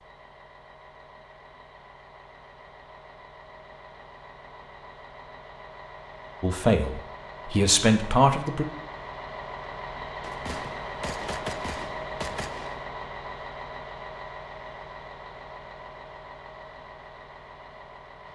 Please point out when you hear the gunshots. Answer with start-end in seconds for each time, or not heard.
10.2-12.8.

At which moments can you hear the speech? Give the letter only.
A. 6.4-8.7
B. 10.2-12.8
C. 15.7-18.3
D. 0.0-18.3
A.